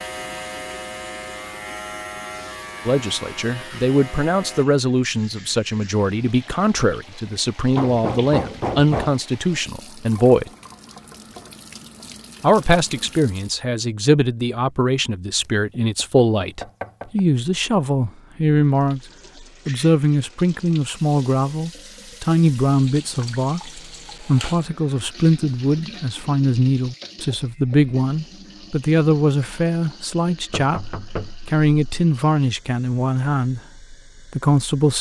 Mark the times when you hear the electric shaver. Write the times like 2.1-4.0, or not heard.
0.0-4.7.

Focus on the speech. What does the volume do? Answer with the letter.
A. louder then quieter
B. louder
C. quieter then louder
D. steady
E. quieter
D.